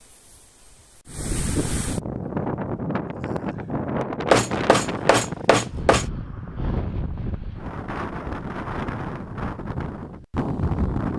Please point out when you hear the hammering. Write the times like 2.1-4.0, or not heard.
4.3-6.0.